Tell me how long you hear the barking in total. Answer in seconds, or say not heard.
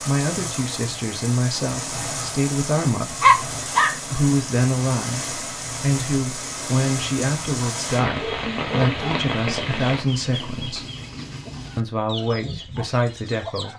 2 s.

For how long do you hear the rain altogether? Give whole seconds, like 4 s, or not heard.
10 s.